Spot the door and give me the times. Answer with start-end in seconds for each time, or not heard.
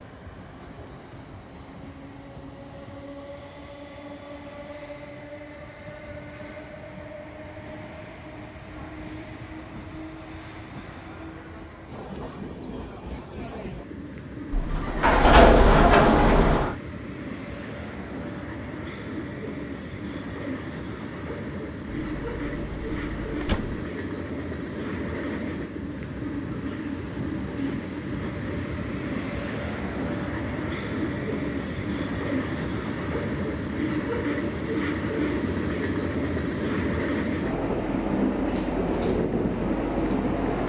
14.5-16.8, 21.9-23.8.